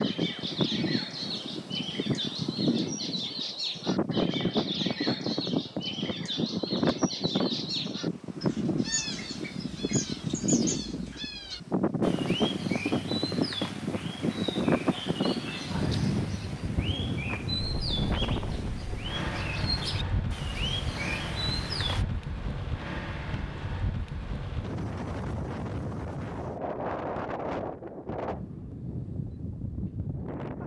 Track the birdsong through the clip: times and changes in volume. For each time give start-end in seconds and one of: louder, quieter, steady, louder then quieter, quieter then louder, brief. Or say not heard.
0.0-22.1 steady.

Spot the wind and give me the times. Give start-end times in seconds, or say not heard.
0.0-30.6.